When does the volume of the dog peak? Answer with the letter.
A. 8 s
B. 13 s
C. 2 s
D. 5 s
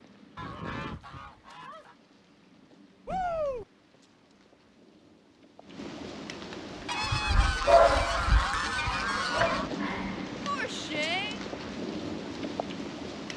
A.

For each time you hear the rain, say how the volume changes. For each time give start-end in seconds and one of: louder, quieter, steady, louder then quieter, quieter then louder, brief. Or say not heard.
0.0-13.3 louder.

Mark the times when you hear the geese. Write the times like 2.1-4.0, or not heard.
0.3-1.9, 6.8-9.7.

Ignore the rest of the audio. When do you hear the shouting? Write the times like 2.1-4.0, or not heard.
3.0-3.6, 10.4-11.4.